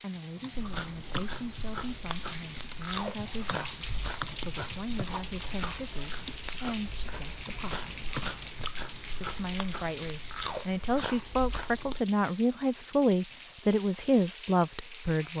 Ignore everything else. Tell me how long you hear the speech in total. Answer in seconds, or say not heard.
14 s.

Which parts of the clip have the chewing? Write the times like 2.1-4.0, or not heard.
0.5-12.0.